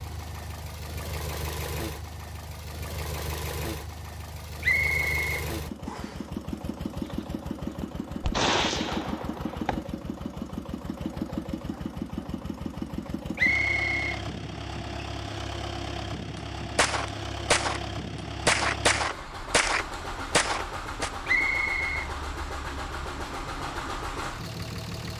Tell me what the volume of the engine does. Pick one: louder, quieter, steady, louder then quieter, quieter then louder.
steady.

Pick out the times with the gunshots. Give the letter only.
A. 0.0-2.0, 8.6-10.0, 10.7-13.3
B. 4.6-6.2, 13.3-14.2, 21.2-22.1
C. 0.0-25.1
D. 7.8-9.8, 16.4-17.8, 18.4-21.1
D.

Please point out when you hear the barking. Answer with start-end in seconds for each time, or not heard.
not heard.